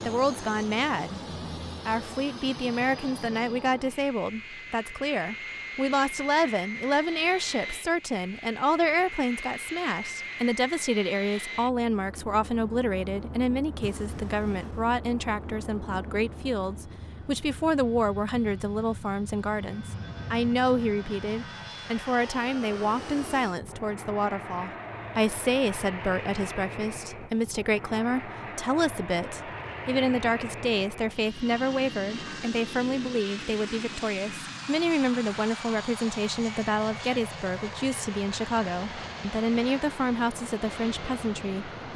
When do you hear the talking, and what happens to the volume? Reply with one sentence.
You can hear the talking briefly from 0.0 to 1.2 s; and from 1.9 to 41.9 s, at a steady volume.